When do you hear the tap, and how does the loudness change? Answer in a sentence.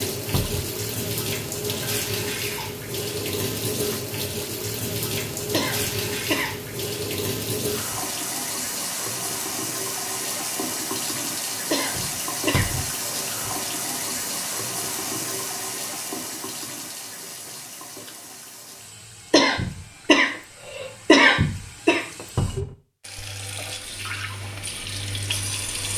You can hear the tap from 0.0 to 25.9 s, getting quieter.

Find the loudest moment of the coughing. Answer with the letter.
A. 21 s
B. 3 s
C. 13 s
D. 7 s
A.